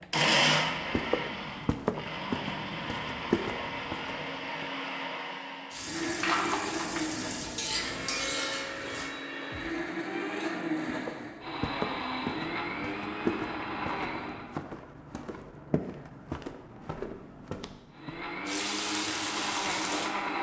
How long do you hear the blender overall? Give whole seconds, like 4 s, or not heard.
17 s.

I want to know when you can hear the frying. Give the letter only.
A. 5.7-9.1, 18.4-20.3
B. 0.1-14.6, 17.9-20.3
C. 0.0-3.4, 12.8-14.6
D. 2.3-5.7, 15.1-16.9
A.